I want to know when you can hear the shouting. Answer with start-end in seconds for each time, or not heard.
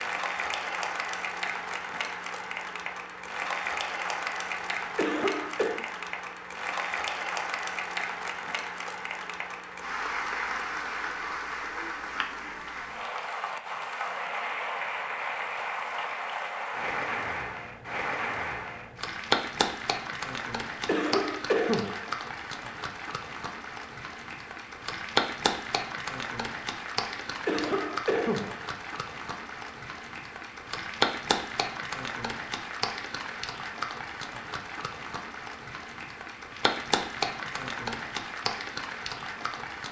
not heard.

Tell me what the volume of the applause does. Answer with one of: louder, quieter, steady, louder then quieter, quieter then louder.
steady.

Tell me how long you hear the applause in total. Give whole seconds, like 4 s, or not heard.
40 s.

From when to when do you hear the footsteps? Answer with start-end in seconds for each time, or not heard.
not heard.